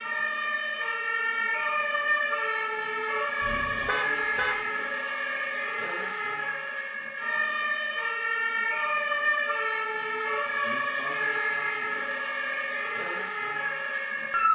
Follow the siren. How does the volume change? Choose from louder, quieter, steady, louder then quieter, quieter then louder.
steady.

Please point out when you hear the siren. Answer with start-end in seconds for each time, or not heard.
0.0-14.5.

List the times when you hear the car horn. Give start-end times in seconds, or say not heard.
3.4-4.7.